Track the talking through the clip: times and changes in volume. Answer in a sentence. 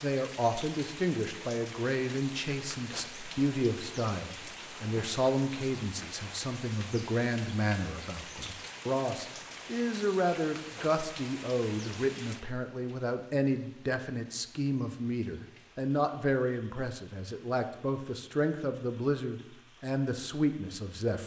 You can hear the talking from 0.0 to 21.2 s, at a steady volume.